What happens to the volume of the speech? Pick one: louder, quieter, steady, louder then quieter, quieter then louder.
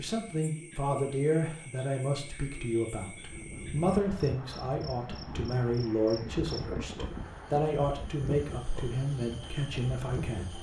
steady.